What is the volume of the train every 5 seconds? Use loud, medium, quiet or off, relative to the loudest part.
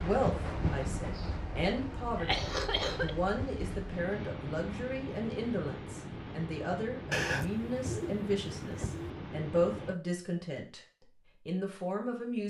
loud, loud, off.